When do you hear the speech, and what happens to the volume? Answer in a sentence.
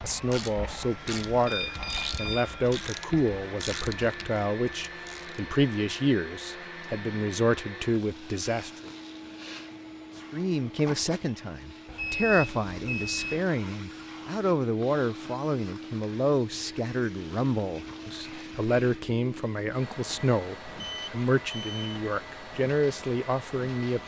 You can hear the speech from 0.0 to 8.9 s, at a steady volume; and from 10.3 to 24.0 s, at a steady volume.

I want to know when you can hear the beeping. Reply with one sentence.
You can hear the beeping from 1.4 to 2.6 s, from 11.8 to 13.4 s and from 20.8 to 22.0 s.